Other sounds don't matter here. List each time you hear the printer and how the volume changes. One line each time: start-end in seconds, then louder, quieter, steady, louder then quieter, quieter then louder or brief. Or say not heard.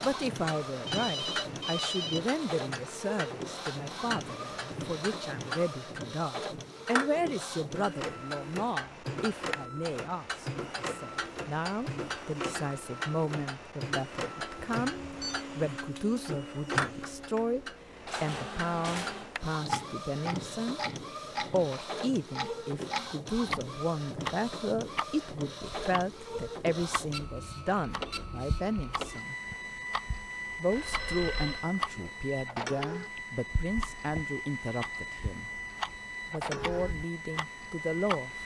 0.0-38.3 steady.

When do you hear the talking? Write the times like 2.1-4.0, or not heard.
0.0-20.8, 21.4-29.4, 30.6-35.5, 36.3-38.3.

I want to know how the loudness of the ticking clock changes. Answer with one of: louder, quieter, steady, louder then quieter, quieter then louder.
steady.